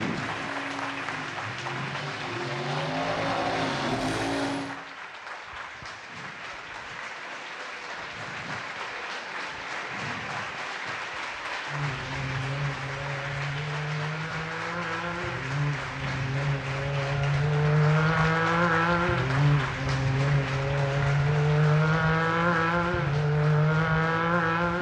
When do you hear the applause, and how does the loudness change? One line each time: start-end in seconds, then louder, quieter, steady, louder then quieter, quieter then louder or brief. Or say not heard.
0.0-24.7 steady.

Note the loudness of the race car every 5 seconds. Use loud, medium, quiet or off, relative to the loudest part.
medium, off, medium, loud, loud.